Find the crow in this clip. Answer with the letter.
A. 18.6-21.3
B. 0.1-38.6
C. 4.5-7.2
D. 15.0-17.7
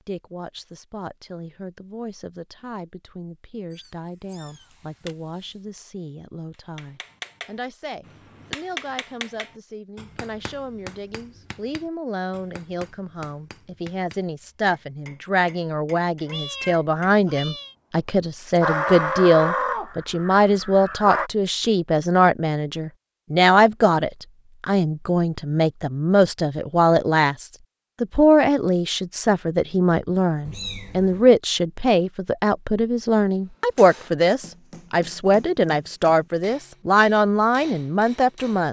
A.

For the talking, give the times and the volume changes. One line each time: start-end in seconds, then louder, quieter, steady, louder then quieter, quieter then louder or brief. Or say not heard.
0.1-38.6 louder.